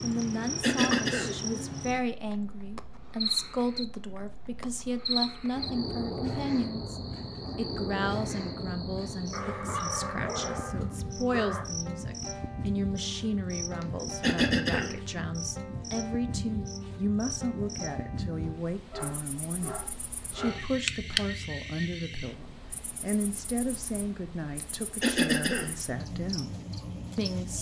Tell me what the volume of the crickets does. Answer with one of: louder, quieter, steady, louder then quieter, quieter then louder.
quieter.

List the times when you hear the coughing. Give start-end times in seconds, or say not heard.
0.2-1.4, 13.8-14.9, 24.6-25.8.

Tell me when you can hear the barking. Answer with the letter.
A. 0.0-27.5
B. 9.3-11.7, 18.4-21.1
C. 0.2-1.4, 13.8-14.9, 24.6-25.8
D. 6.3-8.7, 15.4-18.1
B.